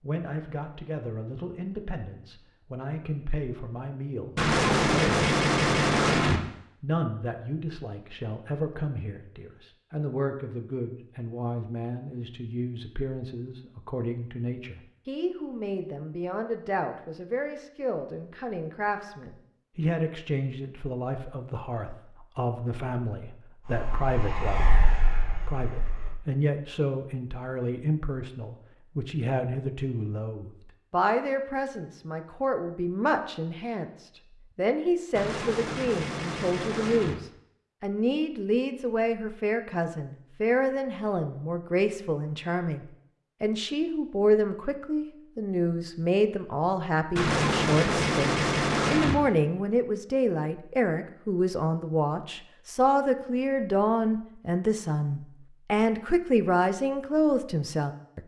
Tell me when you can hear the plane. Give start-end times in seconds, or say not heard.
23.6-26.2.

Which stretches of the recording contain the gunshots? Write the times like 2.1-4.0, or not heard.
4.3-6.4, 35.1-37.1, 47.1-49.1.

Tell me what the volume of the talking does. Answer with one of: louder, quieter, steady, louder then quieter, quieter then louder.
louder.